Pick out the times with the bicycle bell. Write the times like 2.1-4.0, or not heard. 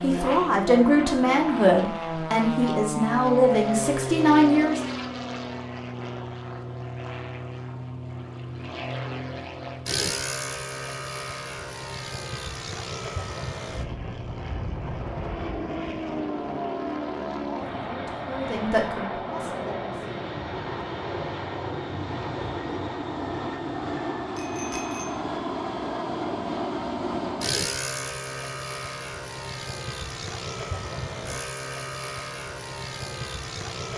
24.4-25.1.